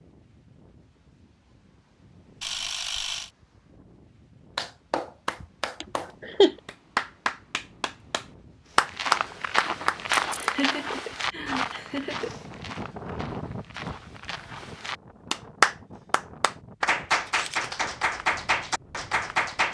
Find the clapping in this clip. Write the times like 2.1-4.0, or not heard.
4.5-10.6, 15.3-19.6.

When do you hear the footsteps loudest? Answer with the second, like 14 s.
10 s.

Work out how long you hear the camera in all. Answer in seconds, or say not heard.
2 s.